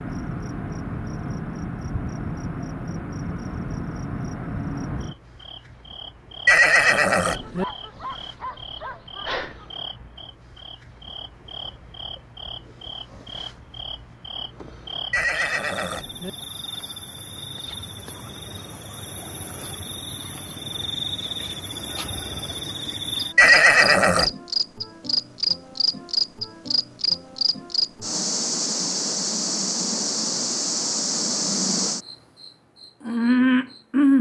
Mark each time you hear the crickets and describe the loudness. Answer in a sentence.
You can hear the crickets from 0.0 to 34.1 s, getting quieter then louder.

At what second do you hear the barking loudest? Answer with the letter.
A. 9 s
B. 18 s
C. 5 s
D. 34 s
A.